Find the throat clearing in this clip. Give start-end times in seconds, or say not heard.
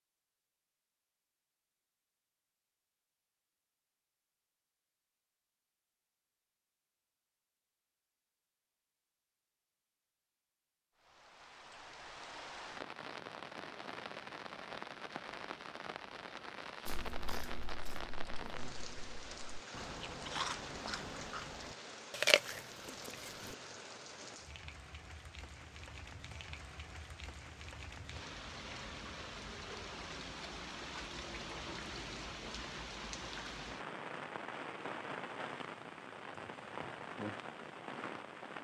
not heard.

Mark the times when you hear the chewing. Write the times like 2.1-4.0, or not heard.
16.9-23.6.